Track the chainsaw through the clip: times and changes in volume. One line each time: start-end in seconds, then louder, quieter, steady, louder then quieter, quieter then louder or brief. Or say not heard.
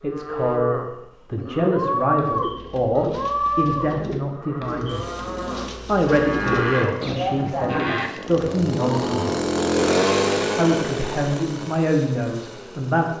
4.8-13.1 louder then quieter.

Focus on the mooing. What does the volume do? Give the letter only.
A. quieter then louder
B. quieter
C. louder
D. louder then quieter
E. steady
A.